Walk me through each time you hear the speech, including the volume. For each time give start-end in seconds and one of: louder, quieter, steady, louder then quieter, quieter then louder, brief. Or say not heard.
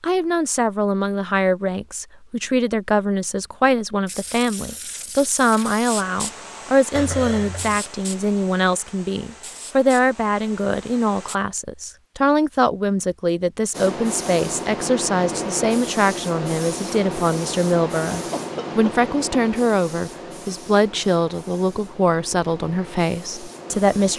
0.0-24.1 steady.